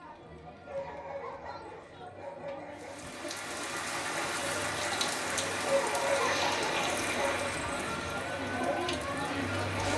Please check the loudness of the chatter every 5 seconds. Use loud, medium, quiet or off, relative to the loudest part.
medium, loud.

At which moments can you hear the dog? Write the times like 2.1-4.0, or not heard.
0.6-3.1, 5.6-7.5.